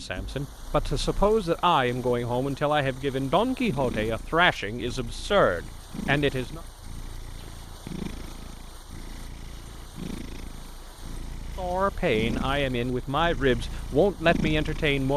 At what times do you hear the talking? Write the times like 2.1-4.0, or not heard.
0.0-6.6, 11.6-15.1.